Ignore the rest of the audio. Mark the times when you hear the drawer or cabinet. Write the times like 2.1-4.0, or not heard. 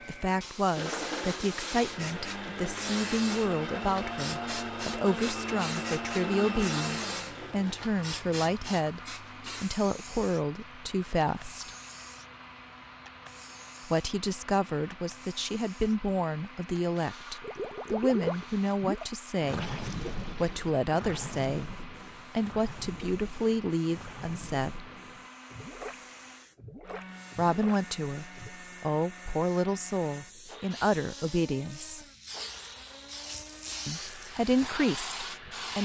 not heard.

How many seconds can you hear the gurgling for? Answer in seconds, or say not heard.
11 s.